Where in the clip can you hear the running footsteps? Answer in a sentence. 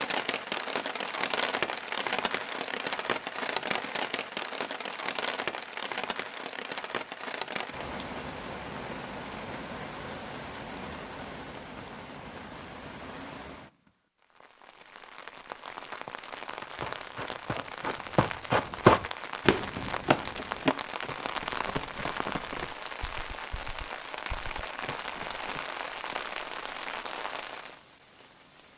You can hear the running footsteps from 16.8 to 25.6 s.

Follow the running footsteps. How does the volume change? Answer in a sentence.
The volume of the running footsteps goes up, then down.